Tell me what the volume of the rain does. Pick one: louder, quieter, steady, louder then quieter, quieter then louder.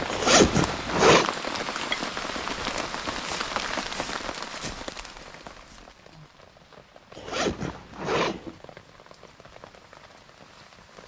quieter.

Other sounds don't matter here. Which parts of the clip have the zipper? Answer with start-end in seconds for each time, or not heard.
0.1-1.3, 7.2-8.6.